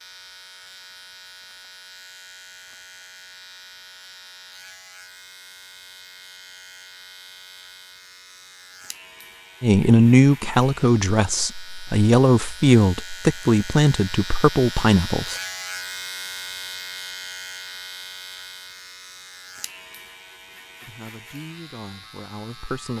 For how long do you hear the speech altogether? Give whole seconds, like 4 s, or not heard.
8 s.